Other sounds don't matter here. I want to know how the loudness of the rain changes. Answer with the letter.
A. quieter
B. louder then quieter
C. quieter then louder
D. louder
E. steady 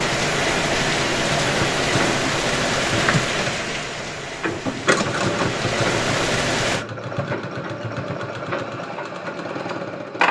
C.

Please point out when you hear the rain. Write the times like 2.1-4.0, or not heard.
0.0-6.8.